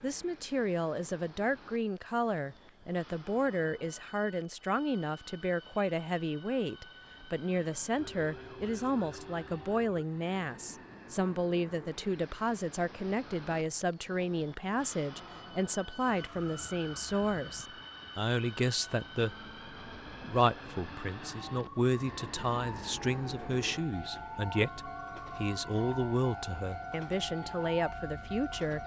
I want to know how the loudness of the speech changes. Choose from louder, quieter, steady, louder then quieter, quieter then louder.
steady.